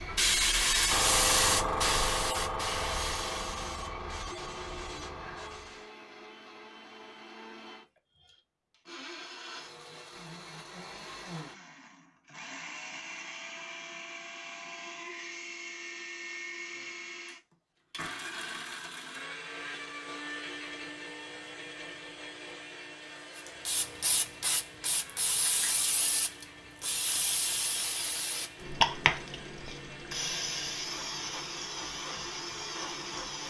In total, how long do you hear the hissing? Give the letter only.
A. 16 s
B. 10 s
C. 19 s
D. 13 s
A.